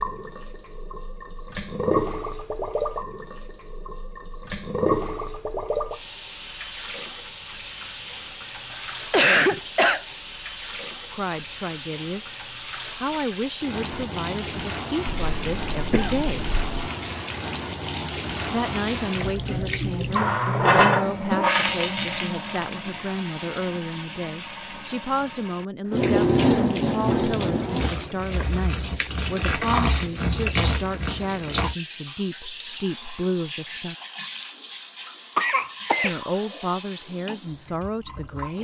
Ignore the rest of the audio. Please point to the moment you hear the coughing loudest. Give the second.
9 s.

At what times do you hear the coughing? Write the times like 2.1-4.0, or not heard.
8.7-10.0, 15.2-16.6, 35.4-36.2.